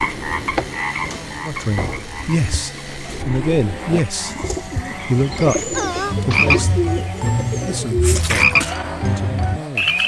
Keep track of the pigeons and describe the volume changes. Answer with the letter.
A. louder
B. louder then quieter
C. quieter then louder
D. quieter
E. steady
A.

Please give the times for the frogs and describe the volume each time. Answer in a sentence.
You can hear the frogs from 0.0 to 10.0 s, getting quieter then louder.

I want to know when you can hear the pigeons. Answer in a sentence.
The pigeons can be heard from 0.2 to 8.2 s.